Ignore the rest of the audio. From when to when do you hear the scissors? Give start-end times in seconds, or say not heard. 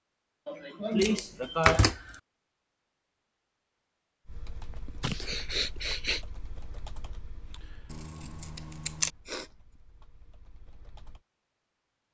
1.0-2.1, 7.9-9.1.